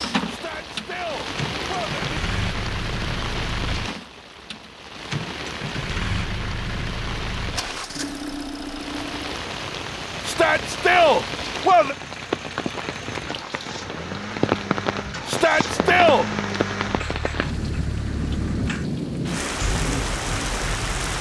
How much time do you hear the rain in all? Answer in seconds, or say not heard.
21 s.